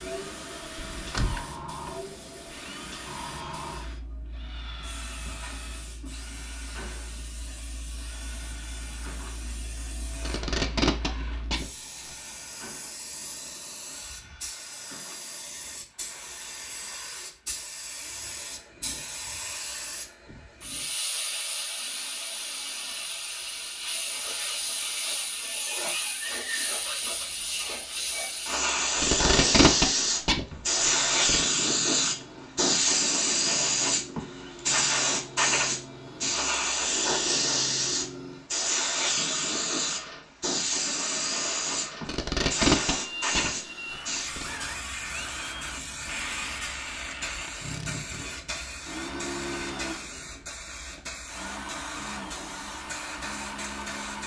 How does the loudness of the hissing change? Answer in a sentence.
The volume of the hissing goes up, then down.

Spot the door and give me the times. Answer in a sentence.
The door can be heard from 0.8 to 1.4 s.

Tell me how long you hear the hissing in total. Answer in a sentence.
You can hear the hissing for 54 seconds altogether.